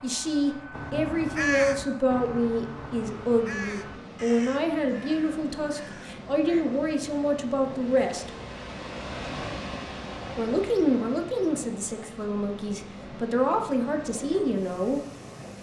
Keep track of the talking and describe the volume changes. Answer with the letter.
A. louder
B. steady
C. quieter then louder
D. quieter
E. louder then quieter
B.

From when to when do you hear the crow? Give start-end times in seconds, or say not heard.
0.7-6.7.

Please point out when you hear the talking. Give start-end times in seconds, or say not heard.
0.0-8.3, 10.3-15.0.